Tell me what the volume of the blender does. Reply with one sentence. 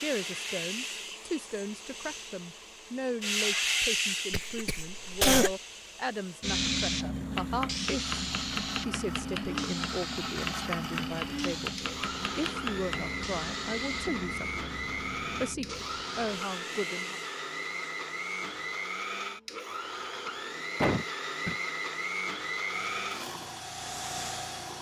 The volume of the blender goes up.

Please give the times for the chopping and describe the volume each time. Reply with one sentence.
You can hear the chopping from 7.3 to 13.1 s, at a steady volume.